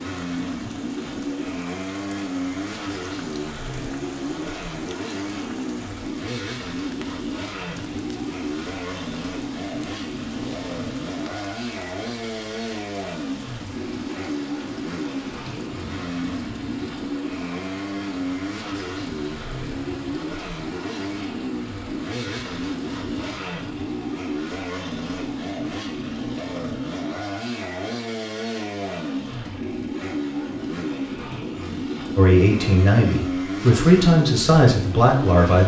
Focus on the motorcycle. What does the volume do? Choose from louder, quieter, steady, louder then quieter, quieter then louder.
steady.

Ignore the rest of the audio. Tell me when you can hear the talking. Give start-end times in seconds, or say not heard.
32.1-35.6.